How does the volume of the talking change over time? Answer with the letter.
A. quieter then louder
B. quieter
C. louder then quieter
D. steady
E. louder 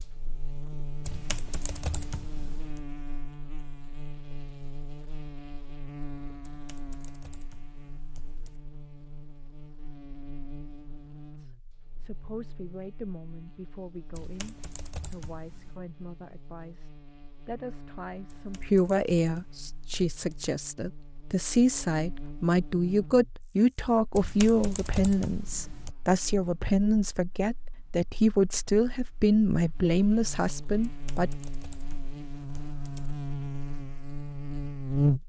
E.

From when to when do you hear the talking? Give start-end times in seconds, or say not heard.
11.3-31.3.